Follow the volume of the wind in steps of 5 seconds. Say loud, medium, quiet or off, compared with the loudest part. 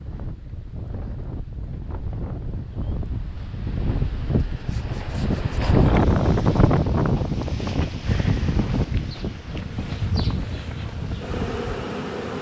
medium, loud, medium.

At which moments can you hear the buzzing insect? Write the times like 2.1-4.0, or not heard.
8.0-12.3.